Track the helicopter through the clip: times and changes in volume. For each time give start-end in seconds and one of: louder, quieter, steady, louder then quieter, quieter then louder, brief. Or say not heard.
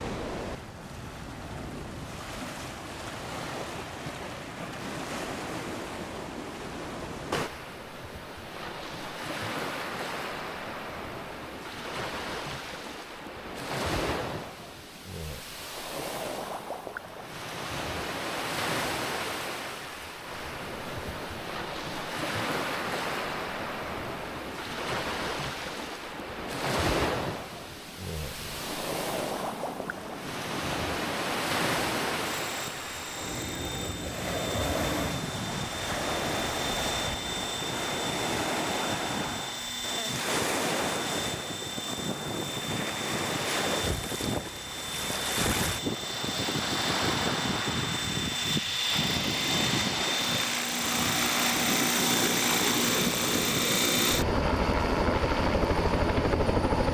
28.3-56.8 louder.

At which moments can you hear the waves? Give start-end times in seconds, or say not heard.
0.0-56.8.